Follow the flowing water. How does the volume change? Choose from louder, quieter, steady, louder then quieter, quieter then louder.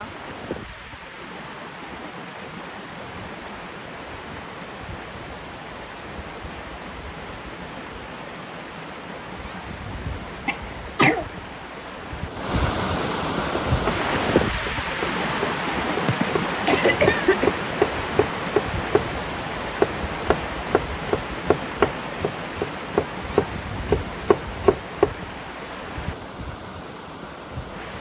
louder then quieter.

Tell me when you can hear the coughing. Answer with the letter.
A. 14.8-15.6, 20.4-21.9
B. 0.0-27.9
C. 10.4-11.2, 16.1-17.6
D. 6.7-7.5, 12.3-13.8
C.